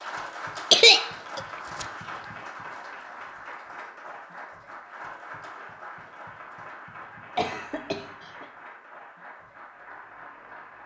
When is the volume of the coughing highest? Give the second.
1 s.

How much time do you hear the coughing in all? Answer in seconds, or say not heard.
2 s.